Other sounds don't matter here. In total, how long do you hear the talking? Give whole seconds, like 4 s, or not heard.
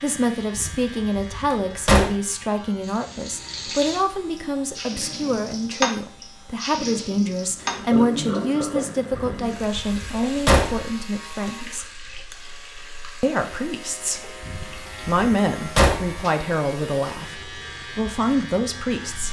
17 s.